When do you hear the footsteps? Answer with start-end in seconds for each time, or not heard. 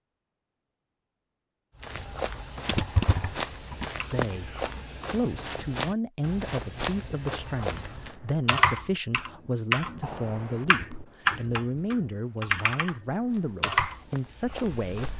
1.8-8.2, 13.2-15.1.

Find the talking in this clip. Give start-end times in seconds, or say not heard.
4.1-4.5, 5.1-15.1.